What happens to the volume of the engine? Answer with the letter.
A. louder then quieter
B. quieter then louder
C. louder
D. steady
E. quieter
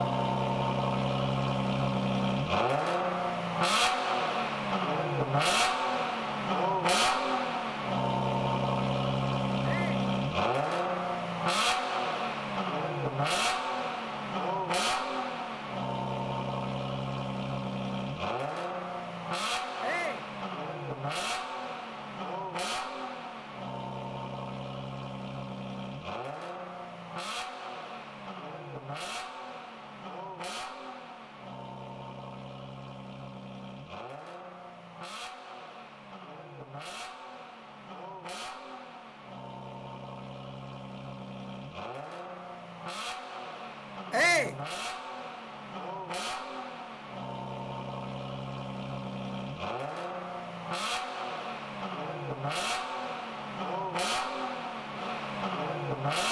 B.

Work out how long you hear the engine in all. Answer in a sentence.
You can hear the engine for 56 seconds altogether.